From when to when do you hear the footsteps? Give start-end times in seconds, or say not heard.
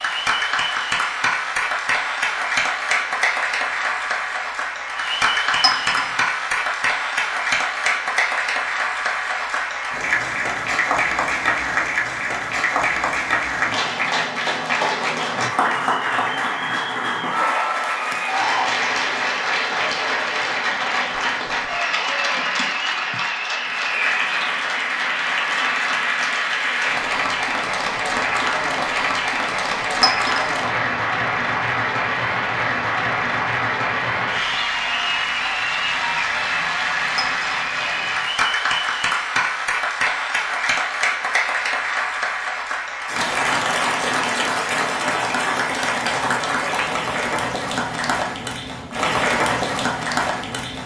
not heard.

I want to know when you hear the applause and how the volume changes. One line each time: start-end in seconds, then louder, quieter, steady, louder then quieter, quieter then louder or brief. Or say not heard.
0.0-50.8 steady.